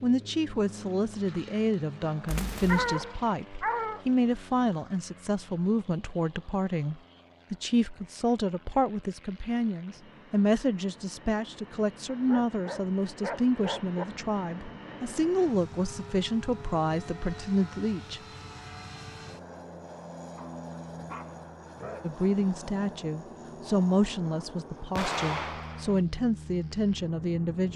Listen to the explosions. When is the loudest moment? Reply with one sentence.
The loudest moment of the explosions is at 25 seconds.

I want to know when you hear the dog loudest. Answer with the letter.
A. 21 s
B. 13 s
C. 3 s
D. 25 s
C.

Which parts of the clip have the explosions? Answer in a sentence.
You can hear the explosions from 2.2 to 3.0 s and from 24.9 to 26.1 s.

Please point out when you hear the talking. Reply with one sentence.
The talking can be heard from 0.0 to 18.2 s and from 22.0 to 27.7 s.